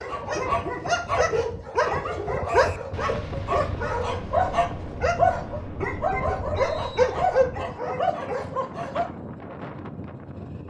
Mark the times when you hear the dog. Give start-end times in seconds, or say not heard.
0.0-9.1.